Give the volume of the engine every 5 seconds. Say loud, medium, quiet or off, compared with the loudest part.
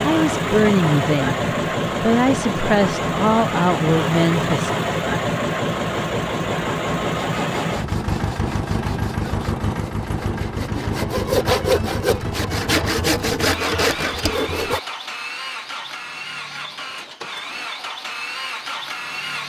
loud, loud, medium, medium.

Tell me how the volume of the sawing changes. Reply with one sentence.
The volume of the sawing goes up.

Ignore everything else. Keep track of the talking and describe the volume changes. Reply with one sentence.
The volume of the talking goes down, then up.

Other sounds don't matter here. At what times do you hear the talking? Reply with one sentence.
The talking can be heard from 0.0 to 4.7 s.